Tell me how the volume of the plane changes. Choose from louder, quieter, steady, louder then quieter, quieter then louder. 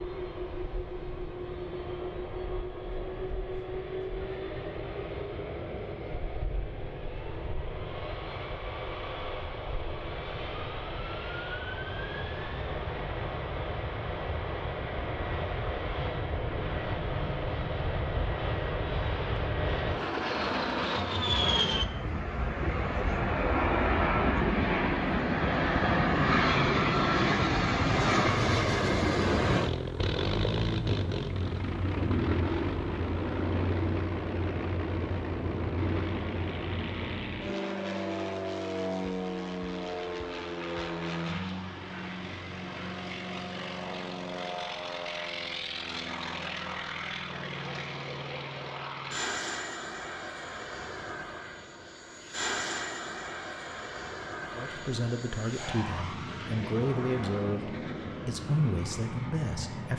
louder then quieter.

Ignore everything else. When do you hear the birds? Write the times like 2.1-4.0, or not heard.
not heard.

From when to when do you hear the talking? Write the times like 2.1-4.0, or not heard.
54.5-59.9.